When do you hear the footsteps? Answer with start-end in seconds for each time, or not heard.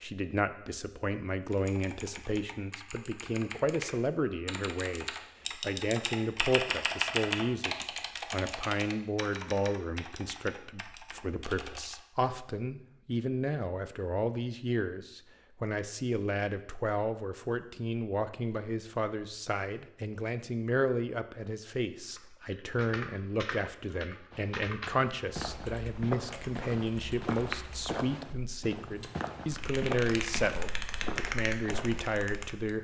24.3-32.1.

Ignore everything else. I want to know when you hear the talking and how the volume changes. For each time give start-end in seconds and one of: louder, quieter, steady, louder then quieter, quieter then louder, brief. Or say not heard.
0.0-32.7 steady.